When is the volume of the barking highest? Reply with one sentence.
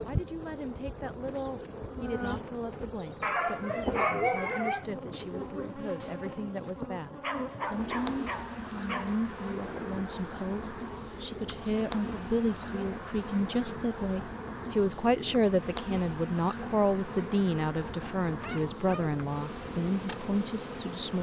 The loudest moment of the barking is at 4 seconds.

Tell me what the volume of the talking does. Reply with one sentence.
The volume of the talking goes up.